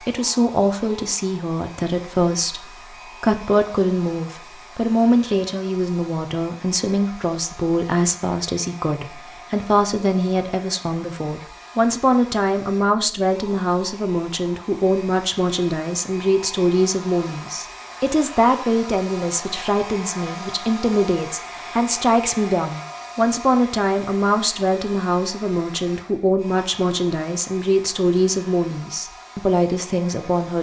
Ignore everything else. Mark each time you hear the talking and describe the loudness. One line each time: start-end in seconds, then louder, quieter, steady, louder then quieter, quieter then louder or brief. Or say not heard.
0.1-30.5 steady.